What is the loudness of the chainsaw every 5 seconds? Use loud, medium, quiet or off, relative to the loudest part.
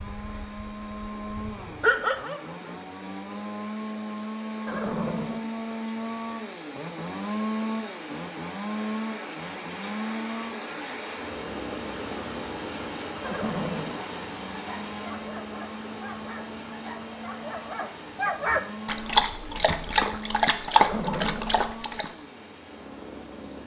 loud, loud, medium, medium, medium.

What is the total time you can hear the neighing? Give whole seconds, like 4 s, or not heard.
2 s.